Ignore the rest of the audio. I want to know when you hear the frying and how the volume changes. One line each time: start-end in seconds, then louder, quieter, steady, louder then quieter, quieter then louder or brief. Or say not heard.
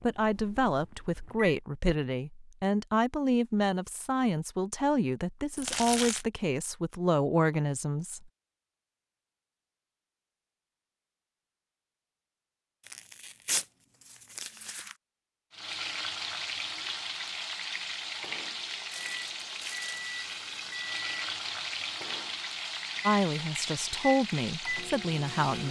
15.5-25.6 steady.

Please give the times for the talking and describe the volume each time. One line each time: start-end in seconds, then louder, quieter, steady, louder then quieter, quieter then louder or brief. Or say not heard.
0.0-8.3 steady
23.1-25.6 brief.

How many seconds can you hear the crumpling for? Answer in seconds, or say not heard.
4 s.